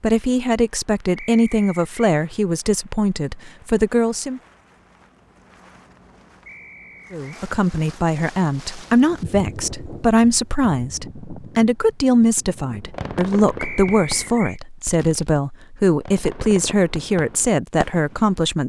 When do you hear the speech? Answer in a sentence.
The speech can be heard from 0.0 to 4.4 s and from 7.1 to 18.6 s.